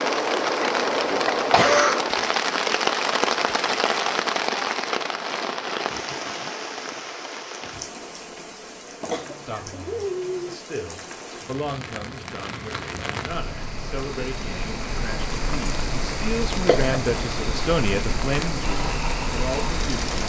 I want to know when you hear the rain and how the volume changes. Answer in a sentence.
You can hear the rain from 0.0 to 20.2 s, getting quieter then louder.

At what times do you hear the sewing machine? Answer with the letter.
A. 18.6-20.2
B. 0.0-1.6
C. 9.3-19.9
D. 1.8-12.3
A.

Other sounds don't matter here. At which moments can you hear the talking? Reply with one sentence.
The talking can be heard from 9.3 to 19.9 s.